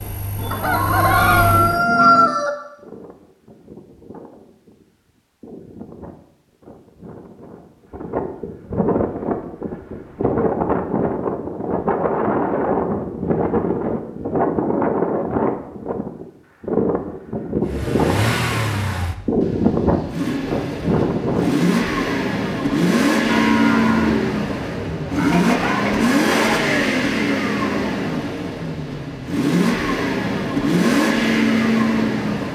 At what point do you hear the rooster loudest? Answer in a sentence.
The volume of the rooster peaks at 2 seconds.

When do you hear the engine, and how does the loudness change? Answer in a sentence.
You can hear the engine briefly from 0.0 to 1.9 s; and from 17.6 to 32.4 s, getting louder.